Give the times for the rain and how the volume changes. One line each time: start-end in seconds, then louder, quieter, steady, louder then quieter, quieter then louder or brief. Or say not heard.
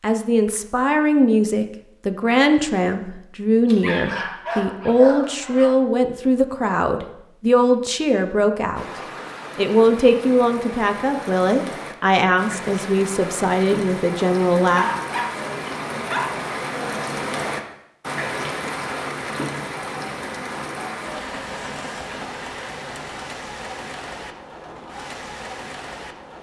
8.8-26.3 louder then quieter.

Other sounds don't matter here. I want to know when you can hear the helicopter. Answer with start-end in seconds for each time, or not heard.
not heard.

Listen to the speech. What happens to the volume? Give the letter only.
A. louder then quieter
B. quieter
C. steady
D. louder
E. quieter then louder
C.